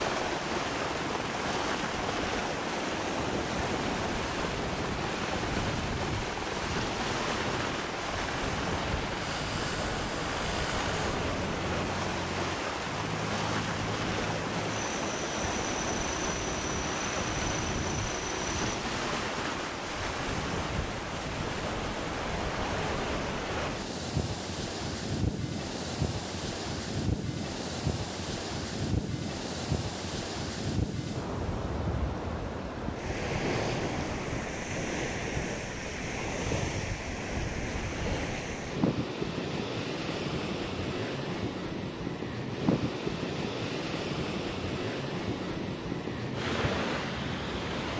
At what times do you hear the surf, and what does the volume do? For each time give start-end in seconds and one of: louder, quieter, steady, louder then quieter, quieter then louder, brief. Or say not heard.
0.0-47.9 steady.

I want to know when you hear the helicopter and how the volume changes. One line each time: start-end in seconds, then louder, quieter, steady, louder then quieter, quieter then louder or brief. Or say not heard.
0.0-18.7 steady.